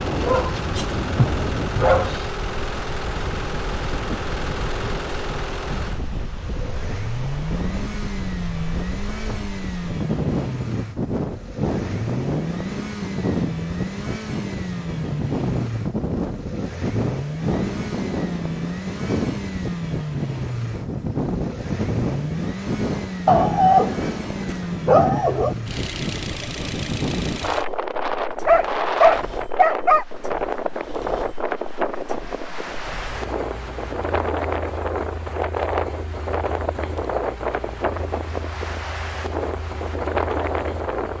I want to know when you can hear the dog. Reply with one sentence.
You can hear the dog from 0.1 to 2.2 s, from 23.2 to 25.6 s and from 28.4 to 30.1 s.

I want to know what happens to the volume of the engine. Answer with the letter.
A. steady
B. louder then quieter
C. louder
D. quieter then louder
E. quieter
E.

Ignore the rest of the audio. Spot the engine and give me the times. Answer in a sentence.
The engine can be heard from 0.0 to 41.1 s.